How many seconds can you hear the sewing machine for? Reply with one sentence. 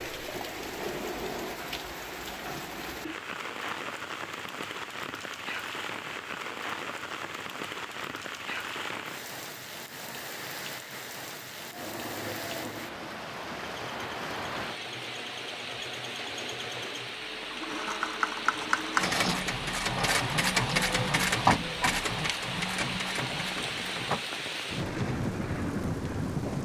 You can hear the sewing machine for 14 seconds altogether.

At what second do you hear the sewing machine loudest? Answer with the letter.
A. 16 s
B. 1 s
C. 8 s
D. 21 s
D.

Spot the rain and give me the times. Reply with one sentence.
You can hear the rain from 0.0 to 26.5 s.